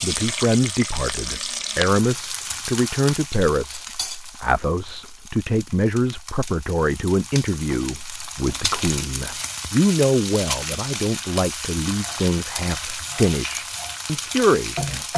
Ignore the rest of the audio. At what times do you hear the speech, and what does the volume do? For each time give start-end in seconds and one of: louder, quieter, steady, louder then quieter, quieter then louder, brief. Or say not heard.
0.0-15.1 steady.